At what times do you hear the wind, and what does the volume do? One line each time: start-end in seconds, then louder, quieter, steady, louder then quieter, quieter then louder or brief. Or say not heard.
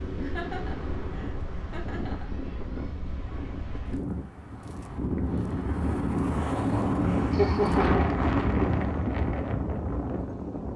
0.0-10.7 louder.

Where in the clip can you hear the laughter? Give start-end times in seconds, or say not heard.
0.2-2.4, 7.3-8.2.